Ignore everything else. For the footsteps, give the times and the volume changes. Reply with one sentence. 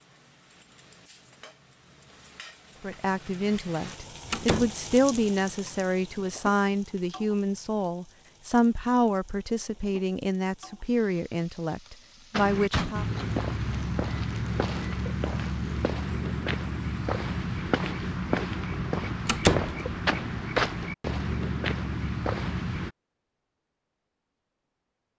You can hear the footsteps from 12.3 to 22.9 s, at a steady volume.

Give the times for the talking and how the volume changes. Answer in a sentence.
The talking can be heard from 2.8 to 13.1 s, at a steady volume.